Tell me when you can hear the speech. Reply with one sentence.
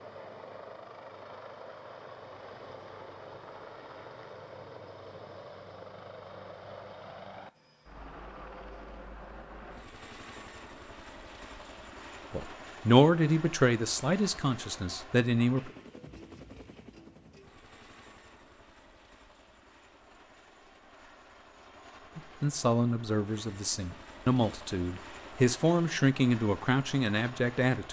You can hear the speech from 12.3 to 15.7 s and from 22.1 to 27.8 s.